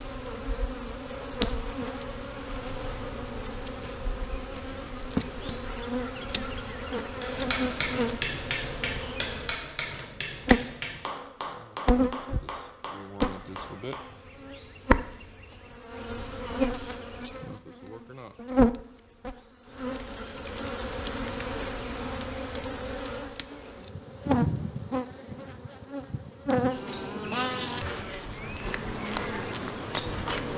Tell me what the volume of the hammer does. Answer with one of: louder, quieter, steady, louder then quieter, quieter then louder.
quieter.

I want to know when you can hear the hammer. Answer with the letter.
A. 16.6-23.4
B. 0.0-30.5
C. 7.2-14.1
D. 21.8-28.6
C.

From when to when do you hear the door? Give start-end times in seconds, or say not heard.
not heard.